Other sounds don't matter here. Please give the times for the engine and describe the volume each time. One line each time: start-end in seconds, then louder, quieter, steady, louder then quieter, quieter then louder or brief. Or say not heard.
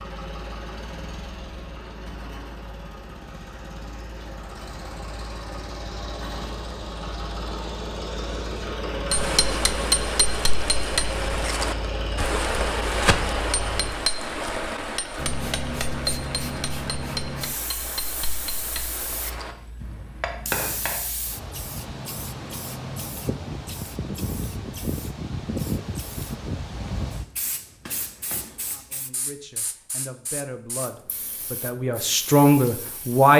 0.0-14.1 louder.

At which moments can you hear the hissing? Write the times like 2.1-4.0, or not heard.
15.2-33.3.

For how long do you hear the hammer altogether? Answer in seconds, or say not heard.
12 s.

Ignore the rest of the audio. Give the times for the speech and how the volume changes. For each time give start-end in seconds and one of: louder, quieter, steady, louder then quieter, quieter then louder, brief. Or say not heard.
28.6-33.3 louder.